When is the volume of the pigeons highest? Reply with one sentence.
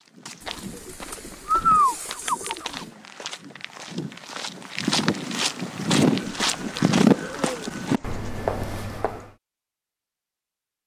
The volume of the pigeons peaks at 2 seconds.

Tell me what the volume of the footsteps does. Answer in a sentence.
The volume of the footsteps goes up, then down.